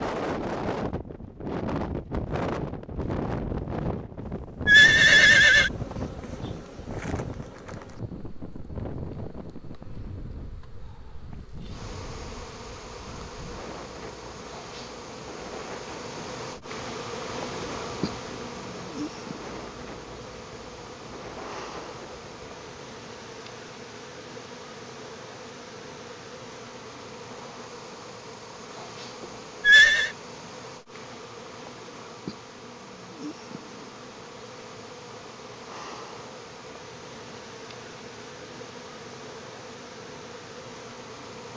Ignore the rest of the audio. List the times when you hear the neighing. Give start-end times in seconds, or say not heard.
4.7-5.7, 29.6-30.1.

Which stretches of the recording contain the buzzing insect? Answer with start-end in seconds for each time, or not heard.
5.7-41.5.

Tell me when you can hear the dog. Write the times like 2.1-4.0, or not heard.
not heard.